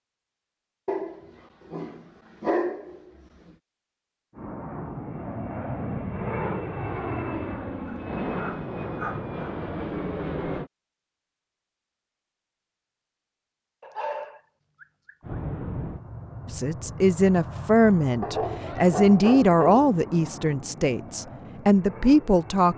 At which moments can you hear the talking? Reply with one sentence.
The talking can be heard from 16.5 to 22.7 s.